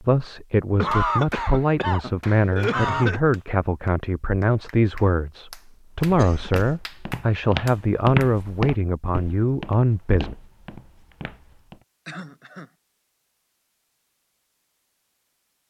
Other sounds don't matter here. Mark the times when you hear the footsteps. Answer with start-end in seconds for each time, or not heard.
6.0-11.8.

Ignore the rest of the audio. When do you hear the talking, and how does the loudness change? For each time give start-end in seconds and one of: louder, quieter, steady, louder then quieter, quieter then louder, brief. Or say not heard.
0.0-10.3 steady.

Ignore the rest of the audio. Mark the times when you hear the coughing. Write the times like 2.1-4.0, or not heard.
0.8-3.2, 6.0-6.8, 12.1-12.7.